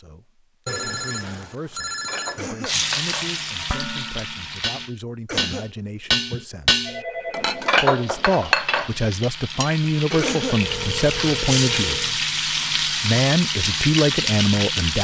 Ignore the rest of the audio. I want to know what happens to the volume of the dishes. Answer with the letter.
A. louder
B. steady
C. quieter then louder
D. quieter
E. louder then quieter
E.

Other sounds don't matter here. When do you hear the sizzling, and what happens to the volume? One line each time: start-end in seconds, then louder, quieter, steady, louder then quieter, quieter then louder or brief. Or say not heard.
2.6-4.9 brief
7.8-14.9 louder.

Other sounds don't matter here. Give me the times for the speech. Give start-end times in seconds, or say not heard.
0.0-6.8, 7.8-12.1, 13.0-14.9.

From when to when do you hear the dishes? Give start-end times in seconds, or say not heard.
1.9-12.2.